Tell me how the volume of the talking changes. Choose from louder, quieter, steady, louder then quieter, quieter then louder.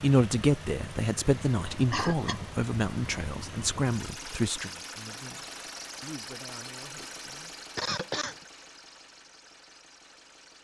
quieter.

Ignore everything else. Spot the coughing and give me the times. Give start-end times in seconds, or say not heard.
1.9-2.4, 7.8-8.4.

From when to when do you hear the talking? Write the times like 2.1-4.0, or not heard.
0.0-7.5.